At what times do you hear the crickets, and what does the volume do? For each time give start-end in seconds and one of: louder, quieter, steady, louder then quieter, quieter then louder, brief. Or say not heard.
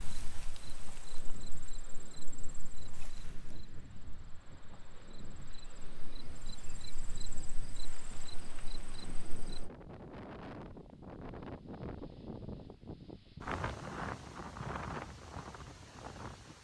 0.0-9.7 quieter then louder.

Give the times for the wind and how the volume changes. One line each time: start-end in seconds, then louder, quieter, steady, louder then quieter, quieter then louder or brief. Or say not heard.
0.0-16.5 louder.